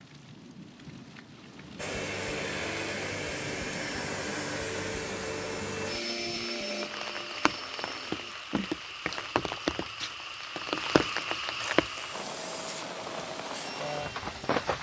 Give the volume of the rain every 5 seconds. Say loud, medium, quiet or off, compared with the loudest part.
quiet, loud, loud.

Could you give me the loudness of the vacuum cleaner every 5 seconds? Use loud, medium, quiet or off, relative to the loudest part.
loud, loud, medium.